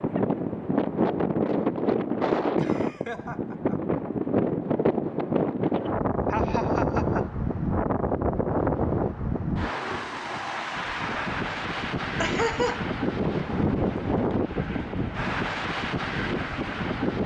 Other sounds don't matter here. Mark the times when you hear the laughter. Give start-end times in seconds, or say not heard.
2.5-3.9, 6.3-7.3, 12.2-12.8.